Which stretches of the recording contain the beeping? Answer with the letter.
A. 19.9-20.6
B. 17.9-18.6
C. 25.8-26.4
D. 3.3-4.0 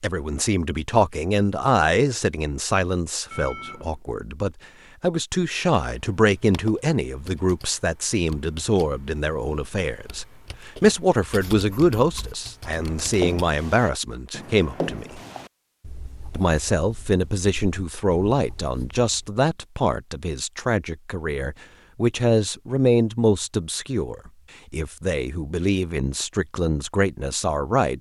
D.